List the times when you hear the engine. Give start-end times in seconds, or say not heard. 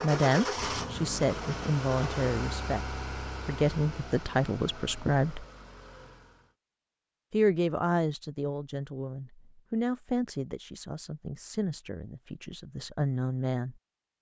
0.0-6.5.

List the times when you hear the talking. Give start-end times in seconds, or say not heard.
0.0-5.5, 7.3-13.8.